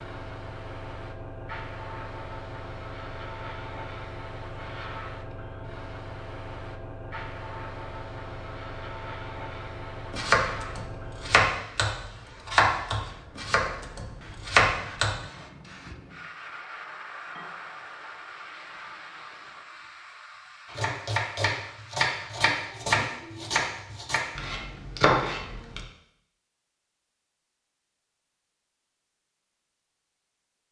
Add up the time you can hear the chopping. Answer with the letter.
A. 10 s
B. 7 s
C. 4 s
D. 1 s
A.